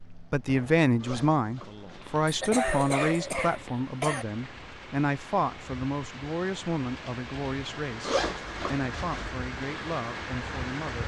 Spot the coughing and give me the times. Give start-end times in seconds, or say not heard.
2.2-4.2.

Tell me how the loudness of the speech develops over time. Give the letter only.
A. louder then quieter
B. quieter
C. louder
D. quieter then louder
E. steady
B.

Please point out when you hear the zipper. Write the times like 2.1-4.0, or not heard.
1.0-2.2, 8.0-9.3.